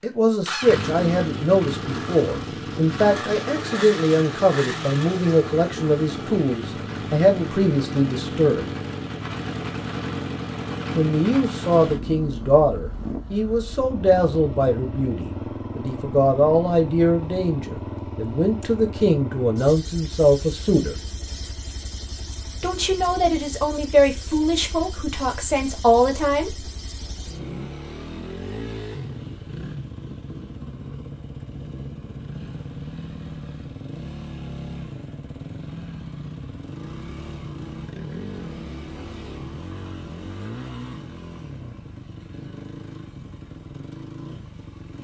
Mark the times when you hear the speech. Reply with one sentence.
The speech can be heard from 0.0 to 8.8 s, from 10.9 to 20.9 s and from 22.6 to 26.6 s.